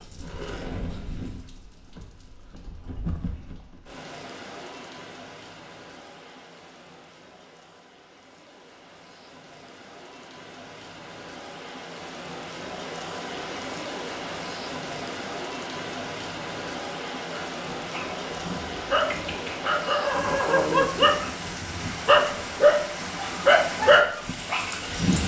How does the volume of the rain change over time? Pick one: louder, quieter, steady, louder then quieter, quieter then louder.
quieter then louder.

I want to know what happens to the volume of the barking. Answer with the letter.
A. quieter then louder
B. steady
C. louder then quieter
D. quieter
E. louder
E.